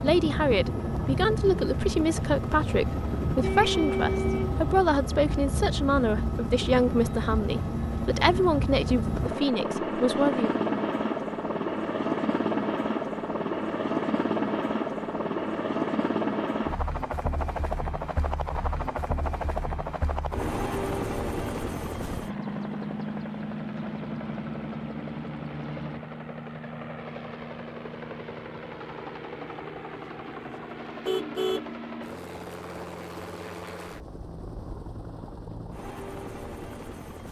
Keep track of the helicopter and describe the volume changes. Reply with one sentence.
The loudness of the helicopter goes down.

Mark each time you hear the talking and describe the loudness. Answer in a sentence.
You can hear the talking from 0.0 to 10.6 s, at a steady volume.